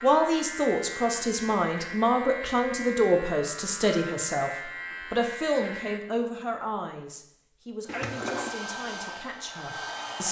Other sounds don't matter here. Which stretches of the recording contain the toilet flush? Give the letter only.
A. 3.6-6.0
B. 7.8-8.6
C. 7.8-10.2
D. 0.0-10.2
B.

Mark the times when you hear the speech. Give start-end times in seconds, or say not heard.
0.0-10.2.